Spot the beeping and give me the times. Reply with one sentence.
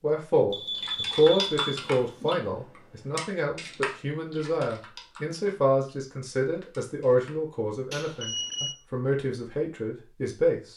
The beeping can be heard from 0.5 to 2.4 s and from 7.9 to 8.8 s.